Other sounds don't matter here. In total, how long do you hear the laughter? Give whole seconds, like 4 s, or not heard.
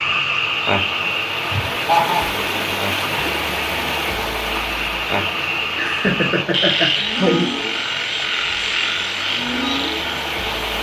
2 s.